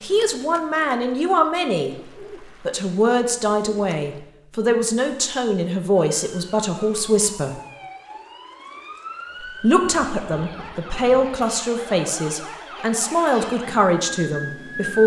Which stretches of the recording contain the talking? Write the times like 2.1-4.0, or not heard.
0.0-1.9, 2.6-7.6, 9.6-15.0.